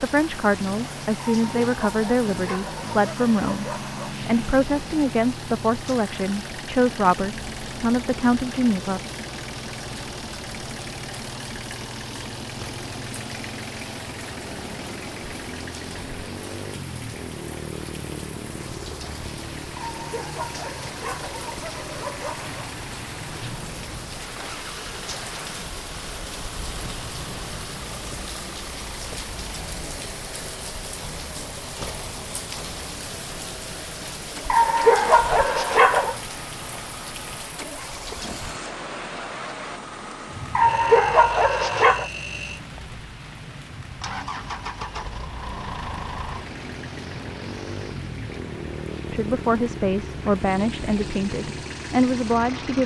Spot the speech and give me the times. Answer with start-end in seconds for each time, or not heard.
0.0-9.0, 49.1-52.8.